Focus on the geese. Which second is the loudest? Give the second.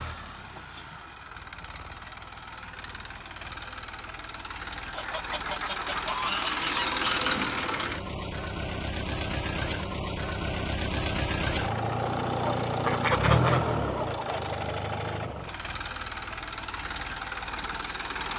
13 s.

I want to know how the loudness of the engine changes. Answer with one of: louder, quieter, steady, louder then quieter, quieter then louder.
louder then quieter.